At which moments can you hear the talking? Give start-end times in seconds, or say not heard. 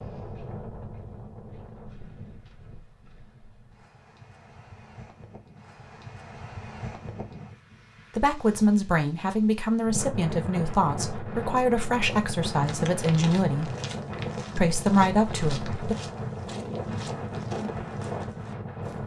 8.2-13.7, 14.6-15.9.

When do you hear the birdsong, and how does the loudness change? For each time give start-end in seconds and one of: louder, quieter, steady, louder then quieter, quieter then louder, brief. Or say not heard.
not heard.